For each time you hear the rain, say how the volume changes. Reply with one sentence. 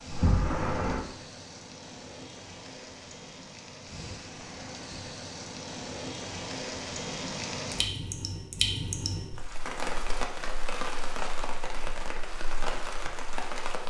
The rain can be heard from 0.0 to 13.8 s, getting louder.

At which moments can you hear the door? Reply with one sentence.
You can hear the door from 0.1 to 1.1 s.